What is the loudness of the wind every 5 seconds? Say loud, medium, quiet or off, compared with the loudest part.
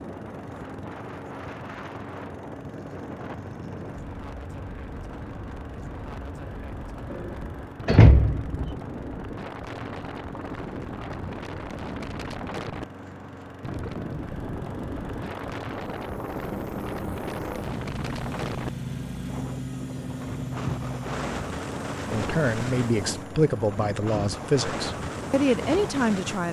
medium, medium, loud, loud, loud, loud.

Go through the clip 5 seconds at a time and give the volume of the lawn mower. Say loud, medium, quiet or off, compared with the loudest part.
medium, medium, medium, loud, loud, off.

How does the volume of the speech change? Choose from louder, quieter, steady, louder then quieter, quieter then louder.
quieter then louder.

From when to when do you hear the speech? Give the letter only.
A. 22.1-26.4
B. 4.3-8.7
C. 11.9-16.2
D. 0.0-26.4
A.